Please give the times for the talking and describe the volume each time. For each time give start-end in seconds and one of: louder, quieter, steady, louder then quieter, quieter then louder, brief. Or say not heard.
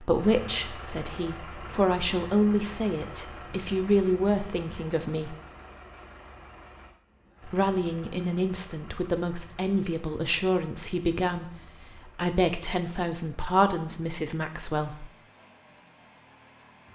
0.0-5.3 louder
7.5-15.1 steady.